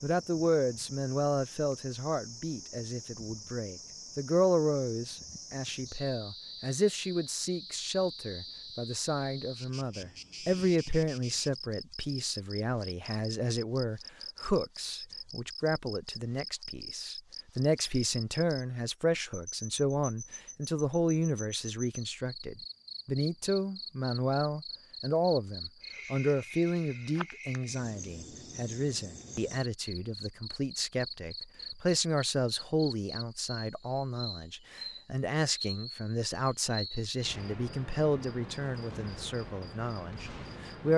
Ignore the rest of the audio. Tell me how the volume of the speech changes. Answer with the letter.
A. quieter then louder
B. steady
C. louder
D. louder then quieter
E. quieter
B.